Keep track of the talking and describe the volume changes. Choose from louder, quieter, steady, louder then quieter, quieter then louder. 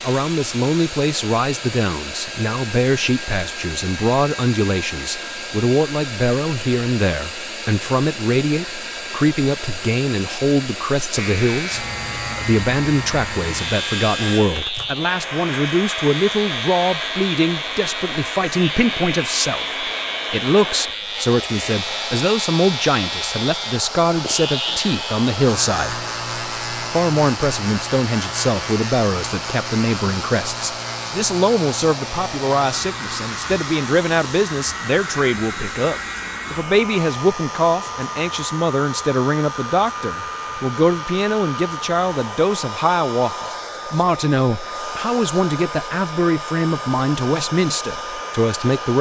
steady.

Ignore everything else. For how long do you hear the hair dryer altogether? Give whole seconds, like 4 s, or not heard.
49 s.